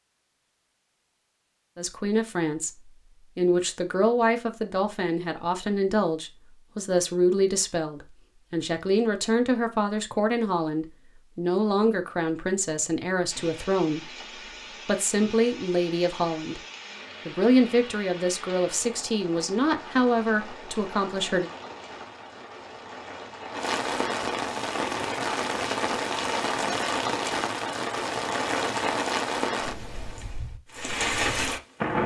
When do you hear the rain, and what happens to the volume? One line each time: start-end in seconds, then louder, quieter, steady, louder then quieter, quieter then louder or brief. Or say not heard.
13.3-32.0 louder.